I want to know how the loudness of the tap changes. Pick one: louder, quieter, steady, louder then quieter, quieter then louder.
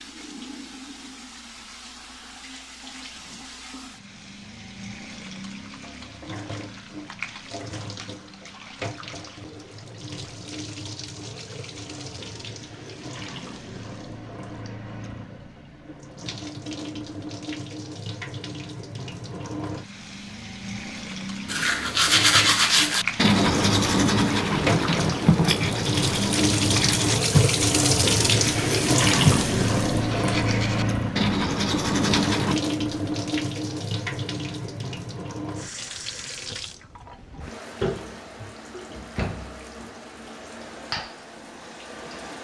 louder then quieter.